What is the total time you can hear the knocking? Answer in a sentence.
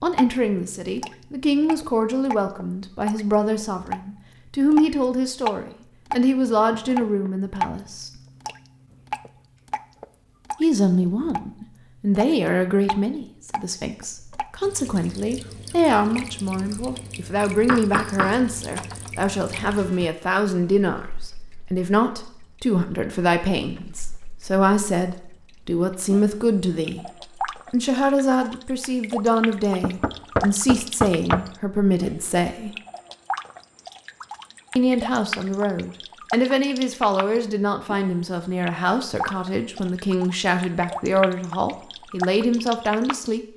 You can hear the knocking for 4 seconds altogether.